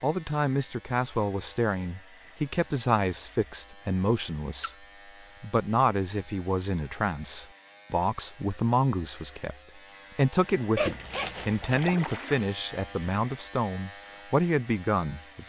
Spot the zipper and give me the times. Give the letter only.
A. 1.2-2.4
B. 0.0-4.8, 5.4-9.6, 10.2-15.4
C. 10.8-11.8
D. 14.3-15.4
C.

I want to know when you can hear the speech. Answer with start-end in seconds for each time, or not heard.
0.0-4.8, 5.4-9.6, 10.2-15.4.